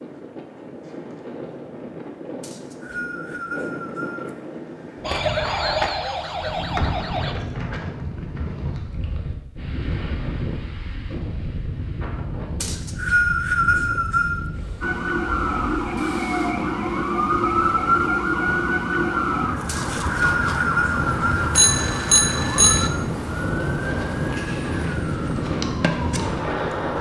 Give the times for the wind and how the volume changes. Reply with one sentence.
You can hear the wind from 0.0 to 26.9 s, getting louder.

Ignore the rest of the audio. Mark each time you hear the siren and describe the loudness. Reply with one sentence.
The siren can be heard briefly from 5.0 to 7.3 s; and from 14.8 to 26.9 s, getting quieter.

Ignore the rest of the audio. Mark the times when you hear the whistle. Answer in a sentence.
The whistle can be heard from 2.4 to 4.3 s, from 12.6 to 14.4 s and from 19.6 to 21.5 s.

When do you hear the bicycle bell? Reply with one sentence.
The bicycle bell can be heard from 21.6 to 22.9 s.